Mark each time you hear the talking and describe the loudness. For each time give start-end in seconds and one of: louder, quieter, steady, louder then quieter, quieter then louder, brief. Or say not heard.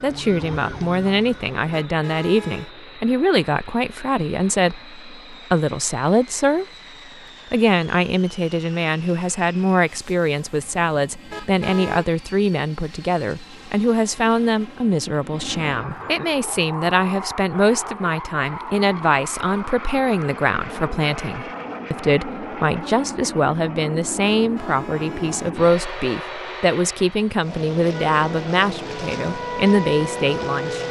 0.0-6.7 steady
7.5-30.8 steady.